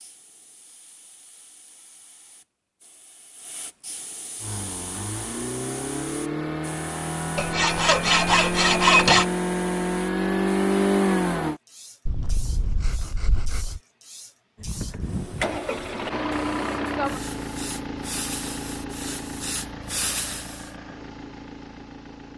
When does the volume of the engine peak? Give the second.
11 s.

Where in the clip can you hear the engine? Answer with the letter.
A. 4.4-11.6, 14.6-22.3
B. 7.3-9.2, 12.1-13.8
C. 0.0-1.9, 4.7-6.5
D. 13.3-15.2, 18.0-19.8
A.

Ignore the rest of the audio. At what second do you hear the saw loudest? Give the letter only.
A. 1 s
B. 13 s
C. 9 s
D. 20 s
C.